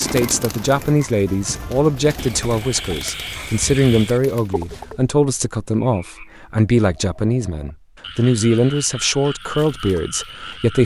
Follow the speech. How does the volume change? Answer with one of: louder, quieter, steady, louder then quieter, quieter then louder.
steady.